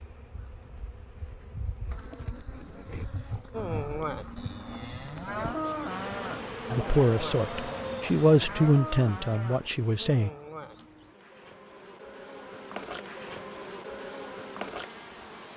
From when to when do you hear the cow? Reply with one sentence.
You can hear the cow from 3.5 to 10.9 s.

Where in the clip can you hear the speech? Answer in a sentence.
You can hear the speech from 6.7 to 10.3 s.